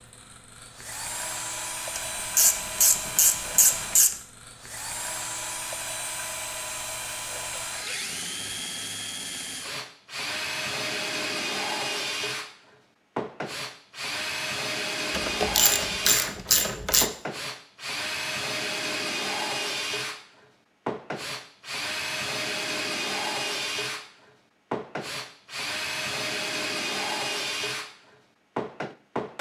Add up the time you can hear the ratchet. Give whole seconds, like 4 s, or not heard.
4 s.